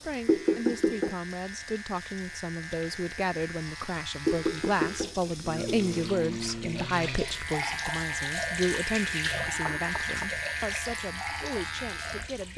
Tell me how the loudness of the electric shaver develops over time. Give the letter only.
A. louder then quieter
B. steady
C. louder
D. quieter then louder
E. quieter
C.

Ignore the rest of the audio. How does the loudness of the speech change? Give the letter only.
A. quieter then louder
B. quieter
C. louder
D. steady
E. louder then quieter
E.